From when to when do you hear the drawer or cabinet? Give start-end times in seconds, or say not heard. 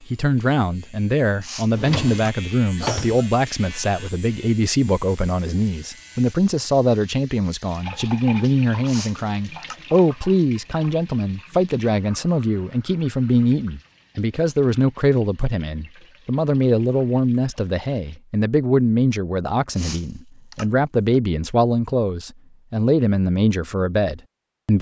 1.7-3.2.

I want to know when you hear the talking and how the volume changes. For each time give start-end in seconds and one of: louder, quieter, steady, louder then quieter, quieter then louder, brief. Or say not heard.
0.1-24.7 steady.